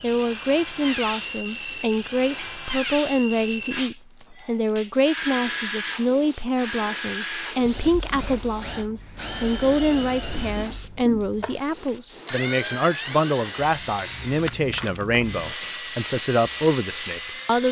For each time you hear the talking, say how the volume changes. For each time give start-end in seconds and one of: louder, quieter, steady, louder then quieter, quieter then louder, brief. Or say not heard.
0.0-17.6 steady.